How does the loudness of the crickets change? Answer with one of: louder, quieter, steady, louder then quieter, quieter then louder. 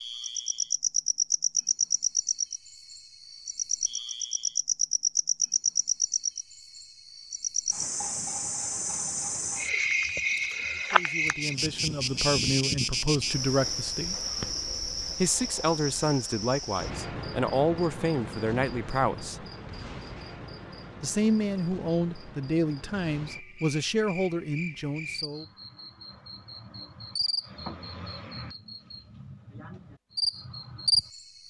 quieter then louder.